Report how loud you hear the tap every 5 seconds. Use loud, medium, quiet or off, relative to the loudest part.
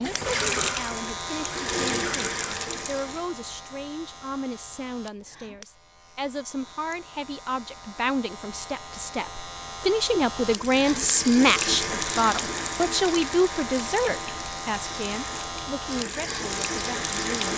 loud, off, loud, loud.